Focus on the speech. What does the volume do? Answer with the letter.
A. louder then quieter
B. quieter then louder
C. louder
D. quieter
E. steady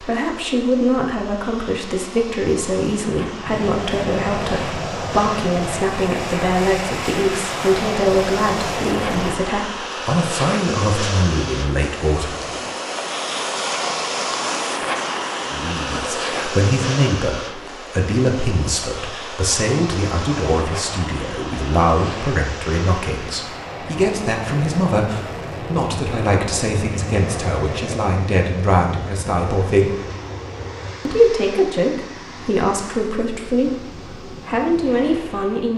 E.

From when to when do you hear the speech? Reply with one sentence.
The speech can be heard from 0.0 to 12.6 s, from 15.4 to 30.1 s and from 31.1 to 35.7 s.